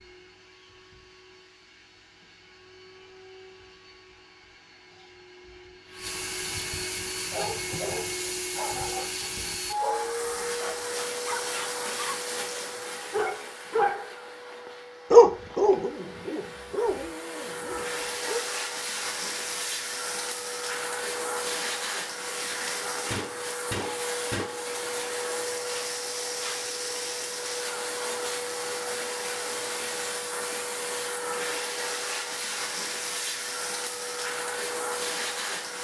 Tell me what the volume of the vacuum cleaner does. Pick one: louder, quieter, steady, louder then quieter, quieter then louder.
louder.